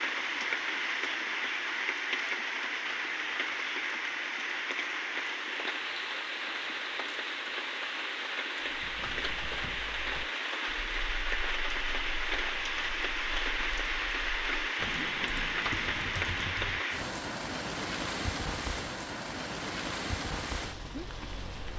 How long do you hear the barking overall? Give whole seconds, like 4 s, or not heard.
not heard.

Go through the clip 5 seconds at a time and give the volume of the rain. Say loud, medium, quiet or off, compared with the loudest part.
loud, loud, loud, loud, medium.